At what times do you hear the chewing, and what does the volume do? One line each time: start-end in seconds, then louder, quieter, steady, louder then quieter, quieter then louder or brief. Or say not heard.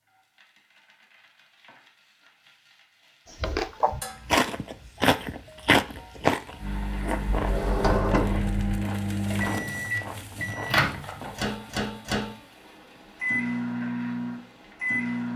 3.4-11.6 quieter.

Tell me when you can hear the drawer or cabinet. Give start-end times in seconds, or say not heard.
7.3-8.8.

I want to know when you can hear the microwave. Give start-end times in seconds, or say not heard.
6.5-15.3.